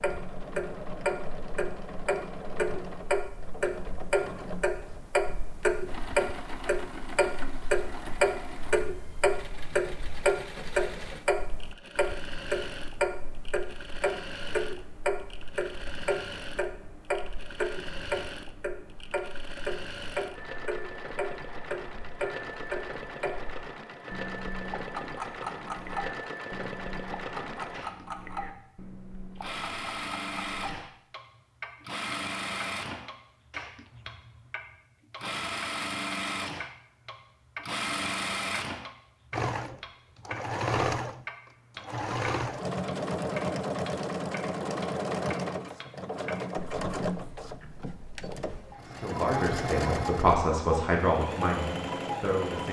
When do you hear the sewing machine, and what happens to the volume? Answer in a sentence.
You can hear the sewing machine from 0.0 to 52.6 s, getting louder.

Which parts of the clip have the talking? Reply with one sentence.
The talking can be heard from 48.8 to 52.6 s.